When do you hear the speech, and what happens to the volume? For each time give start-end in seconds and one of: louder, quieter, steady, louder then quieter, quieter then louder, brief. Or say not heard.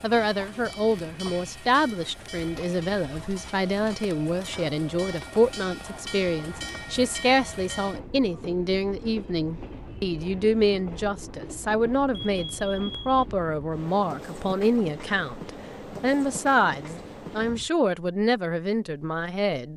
0.0-19.7 steady.